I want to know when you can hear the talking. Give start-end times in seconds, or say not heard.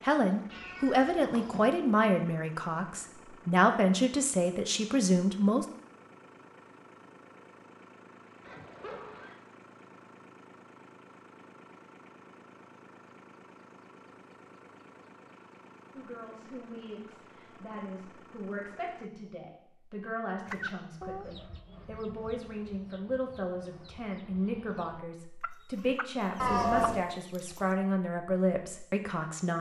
0.0-5.7, 15.9-29.5.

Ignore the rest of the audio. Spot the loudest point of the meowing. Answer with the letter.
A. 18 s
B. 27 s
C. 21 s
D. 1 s
B.